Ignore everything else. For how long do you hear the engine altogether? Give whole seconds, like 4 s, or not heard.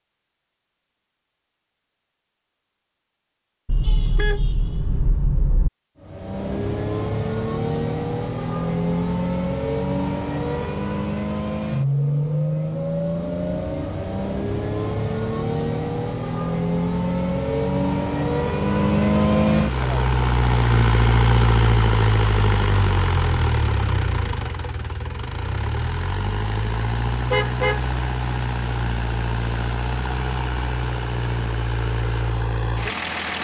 27 s.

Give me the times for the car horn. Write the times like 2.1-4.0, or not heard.
3.6-5.7, 27.3-27.9.